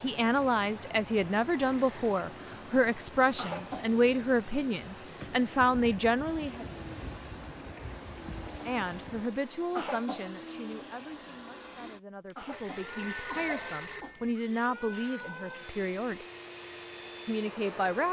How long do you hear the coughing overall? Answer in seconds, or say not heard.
3 s.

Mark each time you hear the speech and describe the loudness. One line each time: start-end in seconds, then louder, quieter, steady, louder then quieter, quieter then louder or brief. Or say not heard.
0.0-6.7 steady
8.7-16.2 quieter then louder
17.2-18.0 brief.